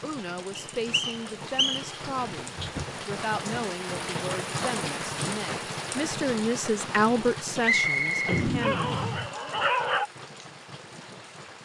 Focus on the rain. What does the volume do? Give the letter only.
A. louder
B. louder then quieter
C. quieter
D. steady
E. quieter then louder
B.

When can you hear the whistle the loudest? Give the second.
8 s.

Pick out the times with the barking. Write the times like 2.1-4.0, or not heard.
8.2-10.1.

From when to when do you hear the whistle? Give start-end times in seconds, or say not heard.
0.6-2.0, 7.6-9.2.